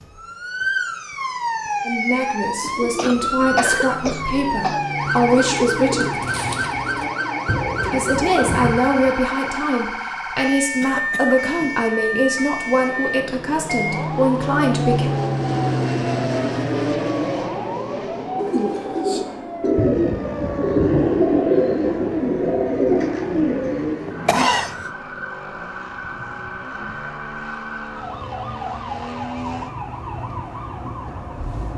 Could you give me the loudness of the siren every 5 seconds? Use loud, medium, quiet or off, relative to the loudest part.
loud, loud, loud, medium, medium, medium, medium.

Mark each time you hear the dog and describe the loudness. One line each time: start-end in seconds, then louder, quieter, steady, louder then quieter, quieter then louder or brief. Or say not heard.
not heard.